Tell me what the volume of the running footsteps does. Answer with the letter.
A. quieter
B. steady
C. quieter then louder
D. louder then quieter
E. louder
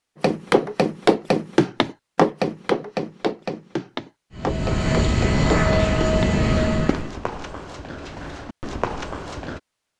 A.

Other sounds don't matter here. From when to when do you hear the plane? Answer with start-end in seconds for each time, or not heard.
4.3-7.1.